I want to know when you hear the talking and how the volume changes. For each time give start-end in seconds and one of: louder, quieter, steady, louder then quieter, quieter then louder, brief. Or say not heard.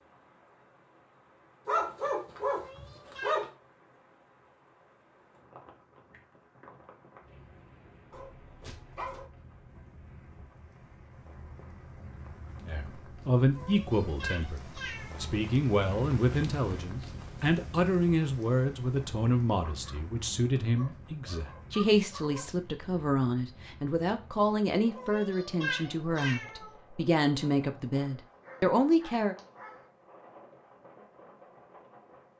12.7-29.4 steady.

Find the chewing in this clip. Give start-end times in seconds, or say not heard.
not heard.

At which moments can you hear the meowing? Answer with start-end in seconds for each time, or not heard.
2.5-3.5, 13.6-15.3, 24.9-26.8.